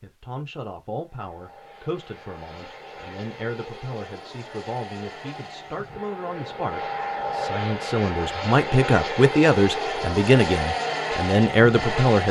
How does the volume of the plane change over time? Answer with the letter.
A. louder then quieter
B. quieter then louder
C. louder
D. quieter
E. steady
C.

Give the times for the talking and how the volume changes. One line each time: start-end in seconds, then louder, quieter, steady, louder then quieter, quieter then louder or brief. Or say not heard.
0.0-12.2 louder.